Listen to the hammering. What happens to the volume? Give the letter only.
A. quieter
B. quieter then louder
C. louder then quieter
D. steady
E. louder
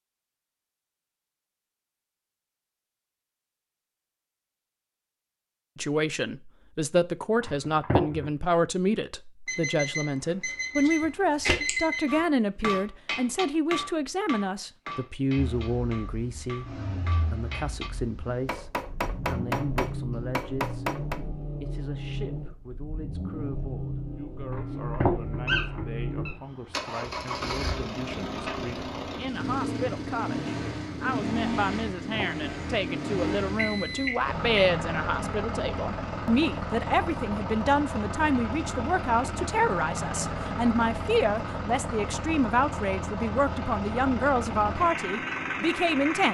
B.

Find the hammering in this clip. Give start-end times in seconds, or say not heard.
12.1-21.2.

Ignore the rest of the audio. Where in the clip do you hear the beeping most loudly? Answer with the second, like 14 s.
12 s.